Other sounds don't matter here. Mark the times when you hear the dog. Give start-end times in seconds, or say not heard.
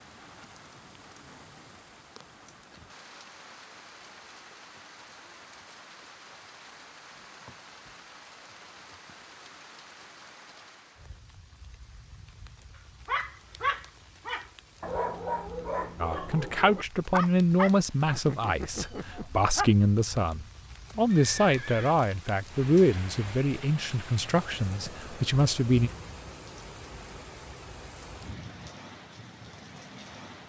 13.1-19.7.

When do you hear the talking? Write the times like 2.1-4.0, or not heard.
16.0-25.9.